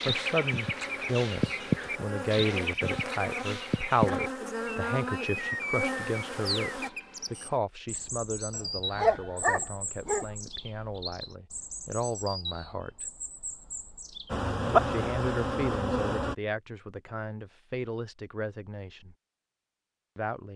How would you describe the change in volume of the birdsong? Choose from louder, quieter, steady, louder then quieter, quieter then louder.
quieter.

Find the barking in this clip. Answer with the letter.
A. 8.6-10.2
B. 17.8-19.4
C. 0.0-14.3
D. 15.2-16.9
A.